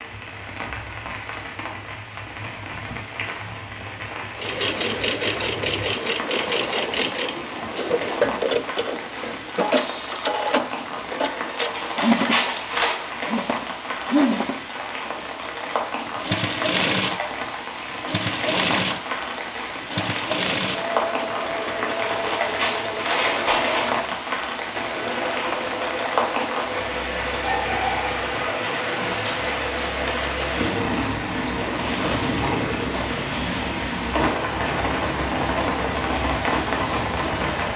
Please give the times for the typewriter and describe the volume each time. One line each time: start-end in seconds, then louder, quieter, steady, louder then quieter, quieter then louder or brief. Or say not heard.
not heard.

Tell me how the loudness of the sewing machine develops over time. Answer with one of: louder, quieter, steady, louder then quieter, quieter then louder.
quieter.